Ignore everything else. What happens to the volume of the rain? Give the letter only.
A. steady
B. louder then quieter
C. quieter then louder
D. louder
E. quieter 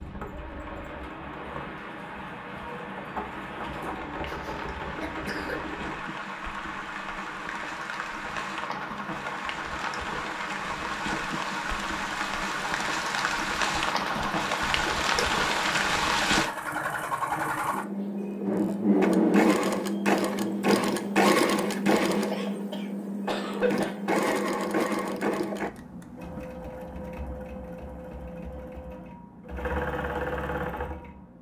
D.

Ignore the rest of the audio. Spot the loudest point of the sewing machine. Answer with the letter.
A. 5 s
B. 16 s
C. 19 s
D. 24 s
C.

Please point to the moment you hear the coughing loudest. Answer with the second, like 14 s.
24 s.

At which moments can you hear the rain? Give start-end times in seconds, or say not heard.
0.0-16.5.